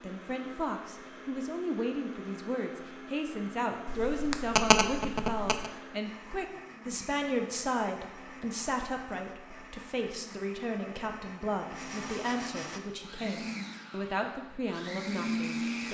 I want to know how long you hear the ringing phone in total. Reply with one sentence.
The ringing phone can be heard for 2 seconds in total.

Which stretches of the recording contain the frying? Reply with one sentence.
The frying can't be heard in this clip.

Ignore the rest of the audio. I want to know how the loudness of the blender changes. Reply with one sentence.
The volume of the blender goes up.